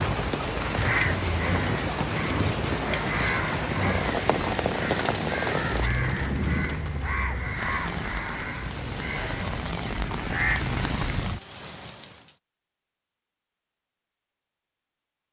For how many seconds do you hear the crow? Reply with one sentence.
The crow can be heard for 10 seconds in total.